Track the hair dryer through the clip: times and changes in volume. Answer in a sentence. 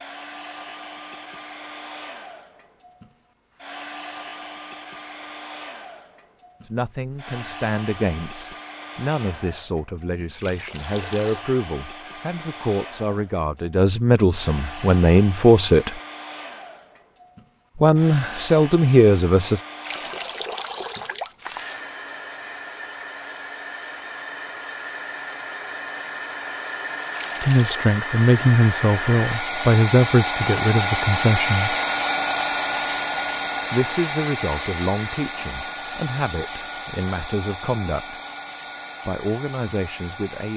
The hair dryer can be heard from 0.0 to 40.5 s, getting louder.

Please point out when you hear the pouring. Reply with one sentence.
You can hear the pouring from 10.3 to 11.4 s, from 19.8 to 21.8 s and from 27.1 to 27.9 s.